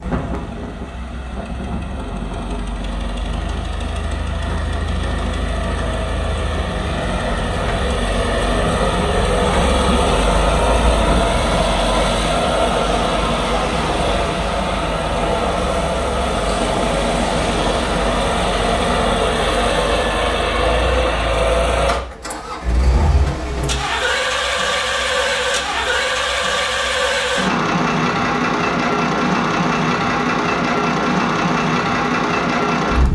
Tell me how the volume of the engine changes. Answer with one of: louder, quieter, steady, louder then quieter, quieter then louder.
louder.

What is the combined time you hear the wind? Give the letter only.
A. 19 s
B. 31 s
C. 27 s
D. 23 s
A.